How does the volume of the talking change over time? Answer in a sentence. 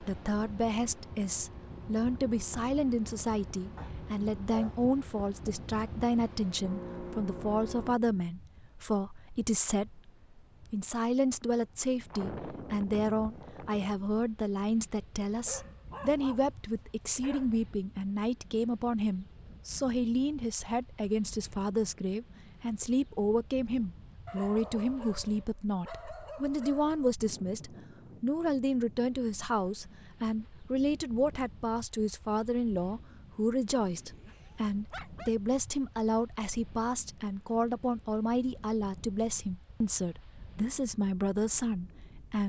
The volume of the talking stays about the same.